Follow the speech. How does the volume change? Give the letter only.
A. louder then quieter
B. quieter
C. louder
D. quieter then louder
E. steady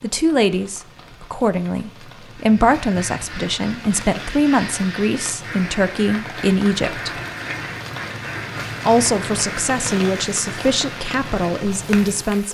E.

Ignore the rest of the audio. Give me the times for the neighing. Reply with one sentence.
You can't hear the neighing here.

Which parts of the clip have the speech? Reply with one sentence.
The speech can be heard from 0.0 to 7.2 s and from 8.8 to 12.4 s.